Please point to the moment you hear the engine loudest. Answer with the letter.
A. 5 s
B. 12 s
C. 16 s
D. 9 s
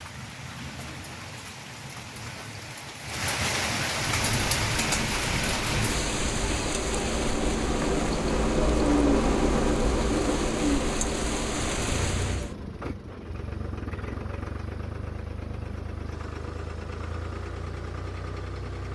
D.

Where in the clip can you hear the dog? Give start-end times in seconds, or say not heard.
not heard.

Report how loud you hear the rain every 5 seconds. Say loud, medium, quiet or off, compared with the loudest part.
loud, loud, loud, off.